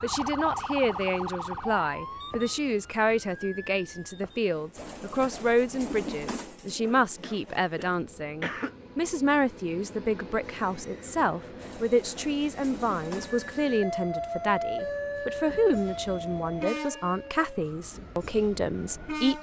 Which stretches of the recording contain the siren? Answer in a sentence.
You can hear the siren from 0.0 to 4.5 s and from 13.1 to 19.3 s.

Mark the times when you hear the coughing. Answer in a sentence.
You can hear the coughing from 6.8 to 8.8 s.